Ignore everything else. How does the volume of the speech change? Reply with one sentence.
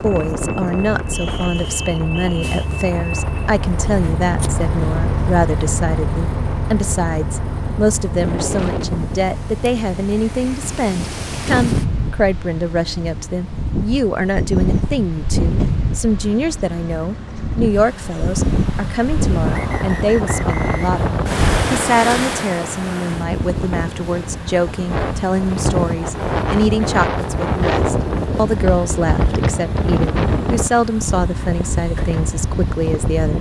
The loudness of the speech stays about the same.